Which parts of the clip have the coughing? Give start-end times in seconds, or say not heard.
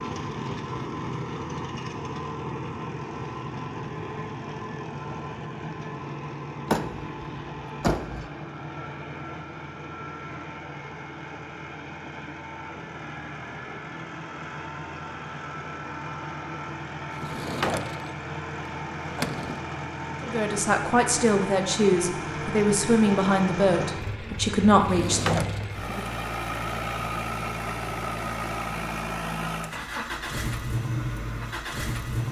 not heard.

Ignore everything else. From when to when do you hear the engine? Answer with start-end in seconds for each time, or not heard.
0.0-32.2.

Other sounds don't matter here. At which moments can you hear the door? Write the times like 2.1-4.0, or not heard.
6.7-8.3, 17.1-18.2, 19.0-19.6, 24.8-25.7.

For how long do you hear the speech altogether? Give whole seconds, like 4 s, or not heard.
6 s.